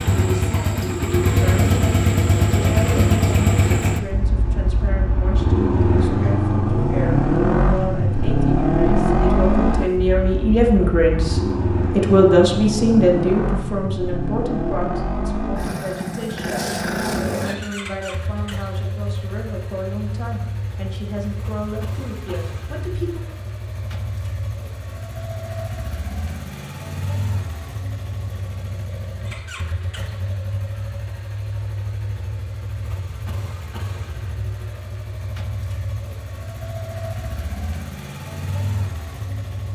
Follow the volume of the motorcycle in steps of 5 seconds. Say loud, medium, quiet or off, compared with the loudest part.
loud, loud, medium, medium, quiet, quiet, quiet, quiet.